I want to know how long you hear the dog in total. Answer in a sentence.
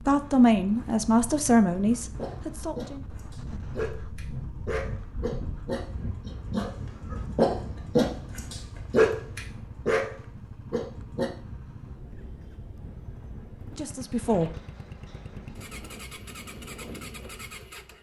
You can hear the dog for 9 seconds altogether.